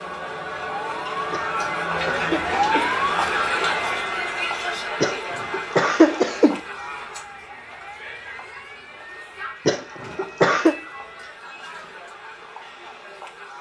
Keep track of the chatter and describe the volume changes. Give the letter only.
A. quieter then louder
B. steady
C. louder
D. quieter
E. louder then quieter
D.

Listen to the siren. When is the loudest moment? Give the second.
3 s.